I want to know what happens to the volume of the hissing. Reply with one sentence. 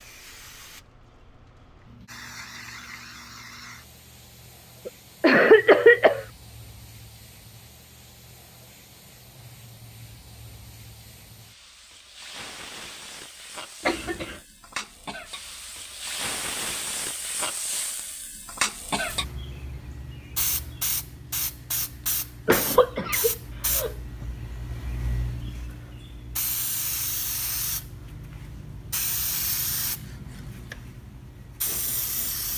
The loudness of the hissing goes up.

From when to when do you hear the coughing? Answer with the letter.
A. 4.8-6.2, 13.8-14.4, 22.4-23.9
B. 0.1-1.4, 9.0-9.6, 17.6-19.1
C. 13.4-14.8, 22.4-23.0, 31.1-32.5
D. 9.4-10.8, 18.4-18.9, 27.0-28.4
A.